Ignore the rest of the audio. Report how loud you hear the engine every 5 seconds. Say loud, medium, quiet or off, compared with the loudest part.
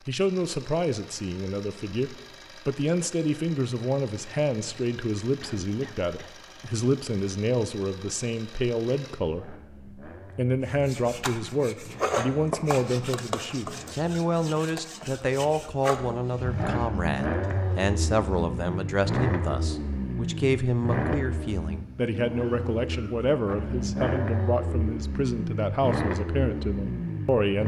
quiet, quiet, quiet, loud, loud, loud.